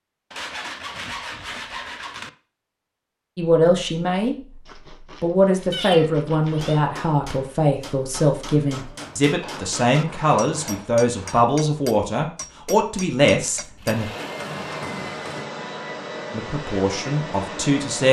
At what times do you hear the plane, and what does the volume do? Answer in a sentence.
The plane can be heard from 13.7 to 18.0 s, at a steady volume.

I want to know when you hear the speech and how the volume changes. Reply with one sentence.
The speech can be heard briefly from 3.4 to 4.3 s; from 5.2 to 14.1 s, at a steady volume; and briefly from 16.3 to 18.0 s.